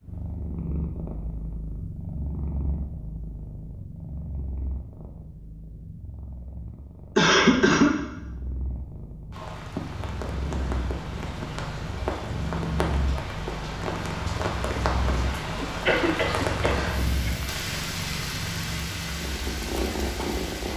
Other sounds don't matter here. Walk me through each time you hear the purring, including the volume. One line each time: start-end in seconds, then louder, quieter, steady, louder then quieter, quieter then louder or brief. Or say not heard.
0.0-20.7 quieter then louder.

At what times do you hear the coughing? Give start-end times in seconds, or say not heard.
7.2-8.0, 15.4-17.4.